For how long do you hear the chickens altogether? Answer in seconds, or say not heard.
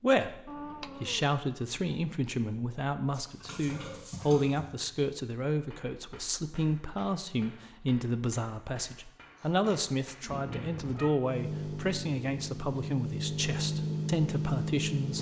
not heard.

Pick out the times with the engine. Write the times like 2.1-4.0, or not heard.
11.2-15.1.